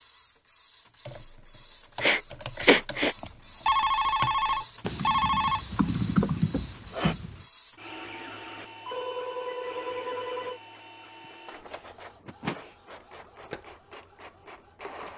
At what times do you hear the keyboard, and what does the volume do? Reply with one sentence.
The keyboard can be heard from 1.1 to 7.5 s, getting louder.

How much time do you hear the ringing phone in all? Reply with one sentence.
You can hear the ringing phone for 4 seconds altogether.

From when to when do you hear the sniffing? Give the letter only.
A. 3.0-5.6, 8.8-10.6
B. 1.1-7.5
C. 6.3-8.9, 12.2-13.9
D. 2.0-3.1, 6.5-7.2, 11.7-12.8
D.